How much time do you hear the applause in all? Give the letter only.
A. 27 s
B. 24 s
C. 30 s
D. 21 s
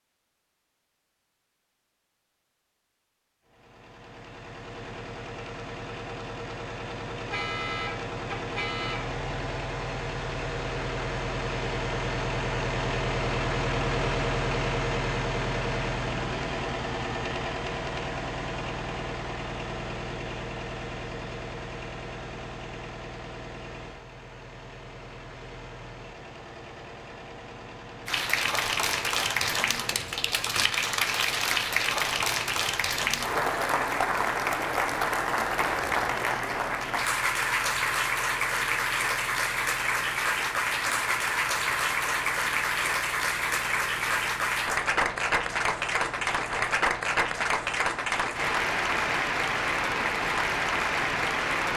B.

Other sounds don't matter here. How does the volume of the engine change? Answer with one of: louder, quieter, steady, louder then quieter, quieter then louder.
quieter.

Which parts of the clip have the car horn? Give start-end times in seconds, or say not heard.
7.1-9.1.